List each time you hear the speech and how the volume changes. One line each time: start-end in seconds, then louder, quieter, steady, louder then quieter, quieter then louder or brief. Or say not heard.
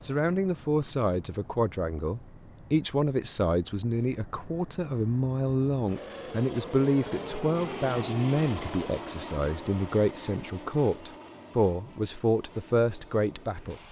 0.0-13.8 steady.